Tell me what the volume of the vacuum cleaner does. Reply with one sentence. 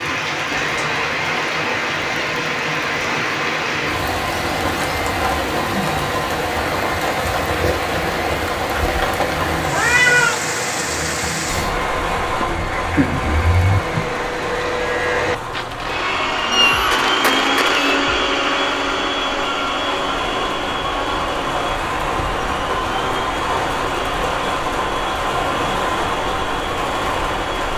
The volume of the vacuum cleaner goes up, then down.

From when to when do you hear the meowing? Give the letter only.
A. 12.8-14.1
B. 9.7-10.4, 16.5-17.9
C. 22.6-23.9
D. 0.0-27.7
B.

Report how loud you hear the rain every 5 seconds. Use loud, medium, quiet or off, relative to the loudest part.
loud, loud, loud, medium, loud, loud.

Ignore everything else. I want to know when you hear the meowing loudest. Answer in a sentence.
The volume of the meowing peaks at 10 seconds.